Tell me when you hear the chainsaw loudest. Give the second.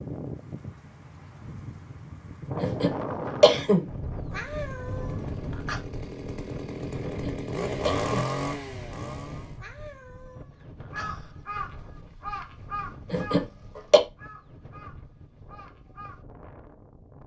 8 s.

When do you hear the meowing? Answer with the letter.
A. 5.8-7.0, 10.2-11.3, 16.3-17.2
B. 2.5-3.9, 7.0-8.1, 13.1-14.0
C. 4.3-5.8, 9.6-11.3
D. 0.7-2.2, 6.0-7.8
C.